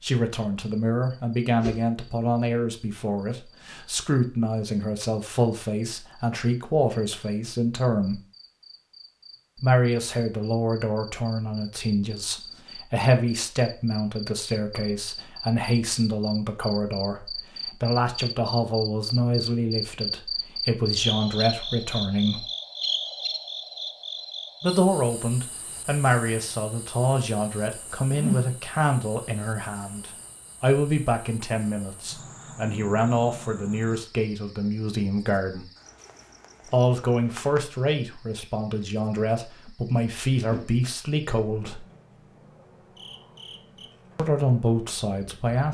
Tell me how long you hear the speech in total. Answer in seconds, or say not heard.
39 s.